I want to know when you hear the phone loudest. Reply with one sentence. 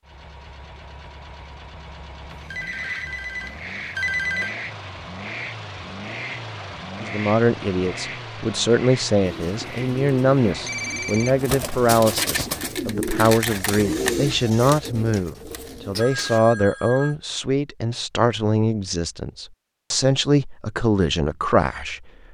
The volume of the phone peaks at 4 seconds.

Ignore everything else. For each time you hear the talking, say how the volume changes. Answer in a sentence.
The talking can be heard from 7.0 to 22.1 s, at a steady volume.